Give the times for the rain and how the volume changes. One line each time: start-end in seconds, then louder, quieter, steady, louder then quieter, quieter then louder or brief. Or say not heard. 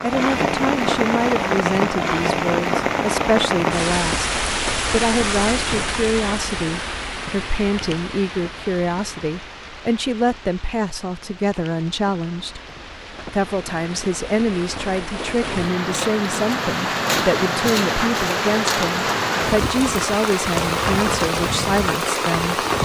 0.0-22.7 quieter then louder.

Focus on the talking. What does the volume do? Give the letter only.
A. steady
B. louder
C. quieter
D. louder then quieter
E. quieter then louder
A.